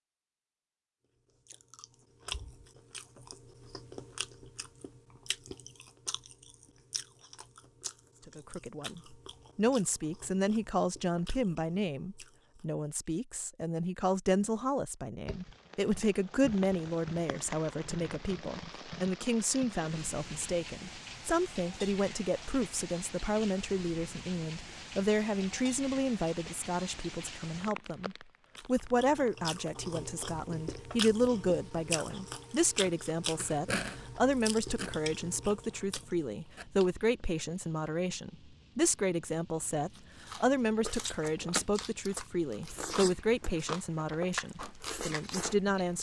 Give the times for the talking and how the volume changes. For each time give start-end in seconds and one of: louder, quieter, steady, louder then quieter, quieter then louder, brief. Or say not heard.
8.2-45.9 steady.